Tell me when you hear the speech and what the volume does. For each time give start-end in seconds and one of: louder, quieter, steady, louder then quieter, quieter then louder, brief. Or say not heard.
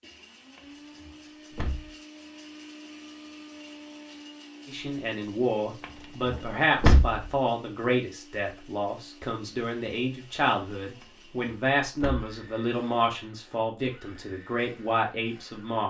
4.7-15.8 steady.